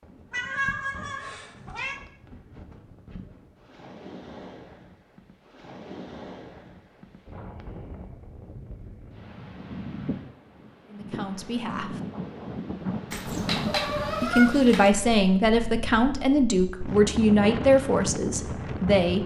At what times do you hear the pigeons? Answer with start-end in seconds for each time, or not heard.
not heard.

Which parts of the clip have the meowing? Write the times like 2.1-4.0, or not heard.
0.3-2.0, 13.1-14.9.